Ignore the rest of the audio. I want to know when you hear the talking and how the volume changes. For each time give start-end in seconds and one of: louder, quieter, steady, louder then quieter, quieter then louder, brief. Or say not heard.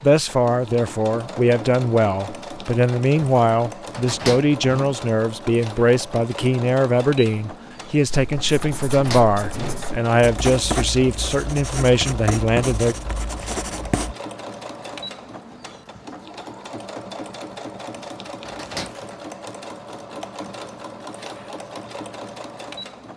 0.0-12.9 steady.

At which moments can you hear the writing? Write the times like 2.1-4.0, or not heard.
8.1-14.2.